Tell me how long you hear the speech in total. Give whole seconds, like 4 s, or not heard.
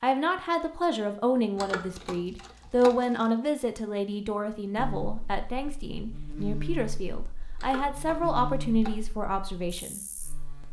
10 s.